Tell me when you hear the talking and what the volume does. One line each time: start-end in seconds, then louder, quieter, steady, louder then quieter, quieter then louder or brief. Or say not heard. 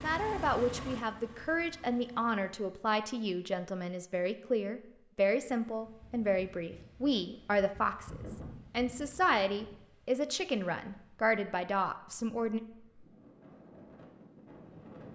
0.0-12.6 steady.